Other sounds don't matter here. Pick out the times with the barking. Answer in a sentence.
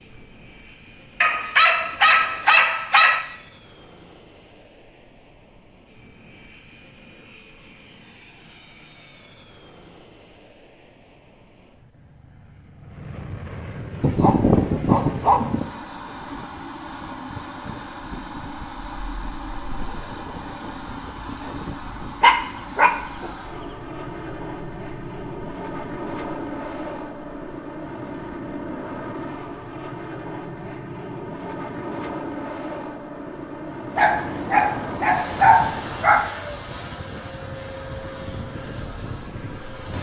The barking can be heard from 1.2 to 3.2 s, from 14.0 to 15.7 s, from 22.2 to 23.3 s and from 34.0 to 36.3 s.